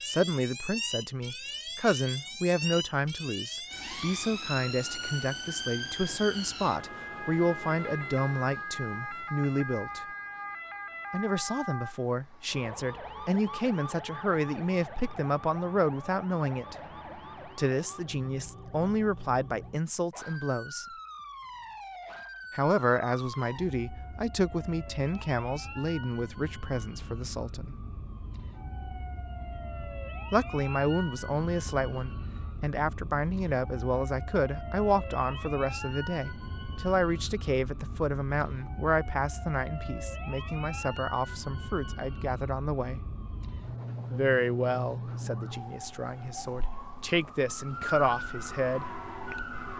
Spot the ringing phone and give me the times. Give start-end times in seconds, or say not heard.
not heard.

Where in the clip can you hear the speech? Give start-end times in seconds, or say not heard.
0.0-10.1, 11.1-16.8, 17.6-20.9, 22.5-27.8, 30.3-43.0, 44.1-48.9.